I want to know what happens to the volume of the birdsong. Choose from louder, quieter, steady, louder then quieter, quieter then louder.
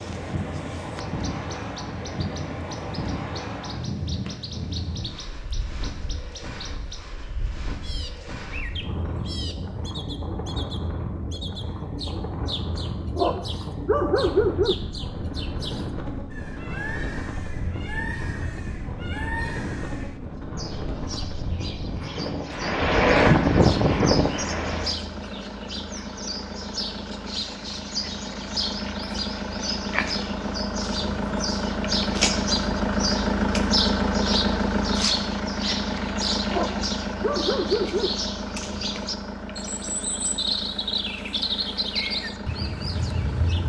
louder.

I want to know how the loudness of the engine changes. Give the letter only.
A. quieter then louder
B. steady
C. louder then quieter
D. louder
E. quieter
C.